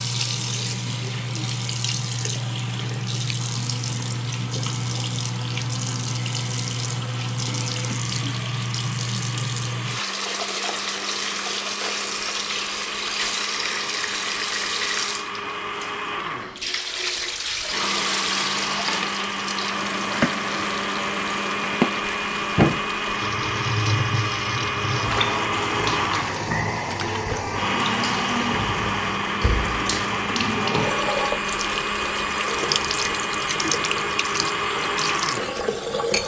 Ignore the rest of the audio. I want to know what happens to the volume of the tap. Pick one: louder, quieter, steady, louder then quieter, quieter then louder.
steady.